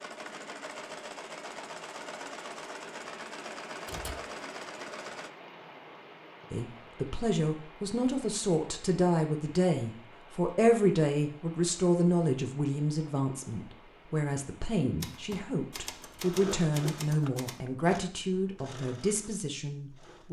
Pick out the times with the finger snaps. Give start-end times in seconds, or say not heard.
not heard.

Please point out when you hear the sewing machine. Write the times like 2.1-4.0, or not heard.
0.0-5.3, 16.2-20.2.